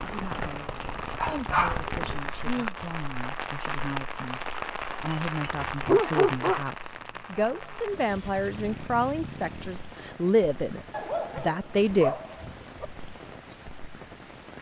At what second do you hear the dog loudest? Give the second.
6 s.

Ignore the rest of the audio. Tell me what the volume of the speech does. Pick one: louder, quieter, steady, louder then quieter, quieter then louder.
louder.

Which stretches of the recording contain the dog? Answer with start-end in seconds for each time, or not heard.
1.1-2.9, 5.1-6.6, 10.9-12.8.